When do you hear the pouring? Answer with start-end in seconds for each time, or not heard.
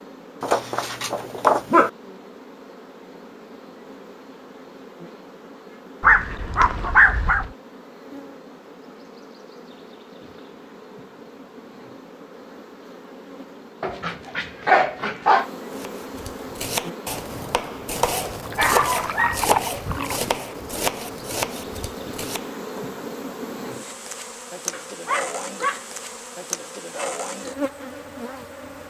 18.4-20.2.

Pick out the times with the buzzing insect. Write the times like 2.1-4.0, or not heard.
0.0-28.8.